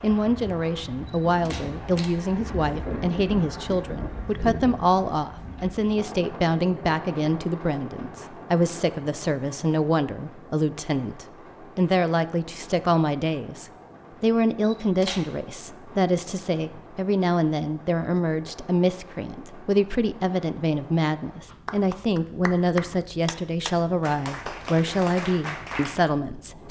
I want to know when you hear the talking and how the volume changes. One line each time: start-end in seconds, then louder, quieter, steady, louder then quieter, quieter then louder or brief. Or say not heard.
0.0-26.6 steady.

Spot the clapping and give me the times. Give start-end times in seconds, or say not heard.
21.5-26.0.